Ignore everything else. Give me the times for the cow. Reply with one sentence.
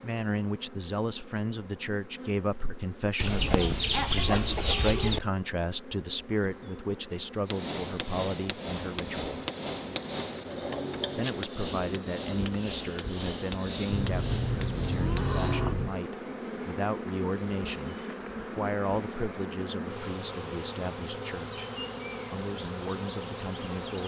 You can hear the cow from 13.9 to 16.0 s.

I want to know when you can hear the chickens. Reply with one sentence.
You can hear the chickens from 3.1 to 5.2 s.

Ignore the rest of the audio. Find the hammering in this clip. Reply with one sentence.
You can hear the hammering from 7.5 to 15.6 s.